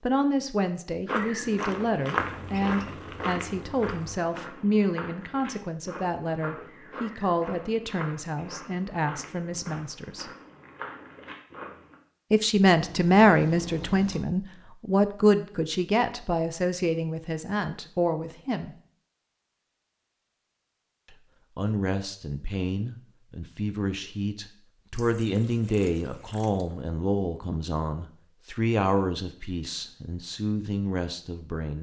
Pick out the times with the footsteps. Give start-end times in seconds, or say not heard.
1.1-11.9.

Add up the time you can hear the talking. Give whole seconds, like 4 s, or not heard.
27 s.